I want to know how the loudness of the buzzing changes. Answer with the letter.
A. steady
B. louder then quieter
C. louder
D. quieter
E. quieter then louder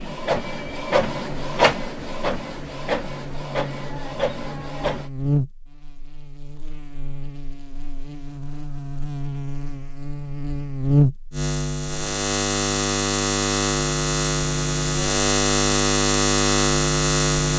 E.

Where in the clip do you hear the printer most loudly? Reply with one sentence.
The volume of the printer peaks at 1 second.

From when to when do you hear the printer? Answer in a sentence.
You can hear the printer from 0.0 to 5.1 s.